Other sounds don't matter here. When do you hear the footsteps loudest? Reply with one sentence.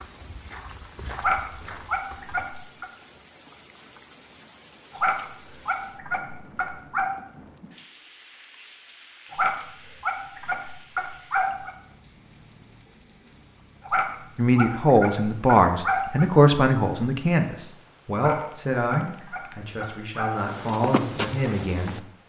The loudest moment of the footsteps is at 21 seconds.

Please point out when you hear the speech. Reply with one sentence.
The speech can be heard from 14.3 to 22.0 s.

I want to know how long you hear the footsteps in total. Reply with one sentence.
You can hear the footsteps for 4 seconds altogether.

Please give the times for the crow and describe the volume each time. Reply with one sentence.
You can't hear the crow here.